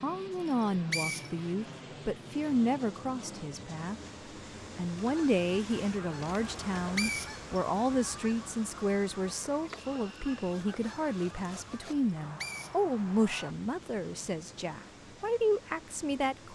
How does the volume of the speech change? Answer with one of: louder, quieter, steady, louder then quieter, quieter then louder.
steady.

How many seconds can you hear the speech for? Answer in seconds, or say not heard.
16 s.